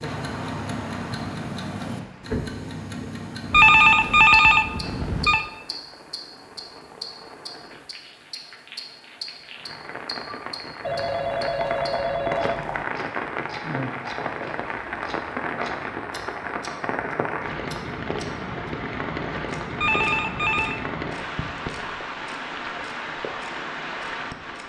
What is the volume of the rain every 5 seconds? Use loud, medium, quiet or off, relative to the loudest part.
medium, quiet, loud, loud, loud.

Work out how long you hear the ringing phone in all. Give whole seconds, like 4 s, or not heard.
5 s.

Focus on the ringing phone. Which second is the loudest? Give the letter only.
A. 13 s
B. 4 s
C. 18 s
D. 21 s
B.